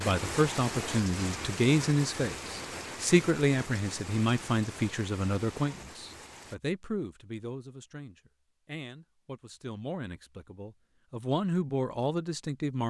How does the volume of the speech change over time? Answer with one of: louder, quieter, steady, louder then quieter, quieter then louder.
quieter then louder.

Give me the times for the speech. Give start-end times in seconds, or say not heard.
0.0-12.8.